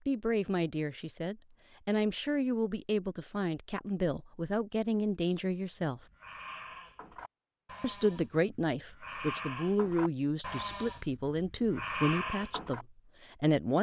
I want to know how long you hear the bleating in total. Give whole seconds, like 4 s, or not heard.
7 s.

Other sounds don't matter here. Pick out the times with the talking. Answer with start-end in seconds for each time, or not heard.
0.1-6.0, 7.8-13.7.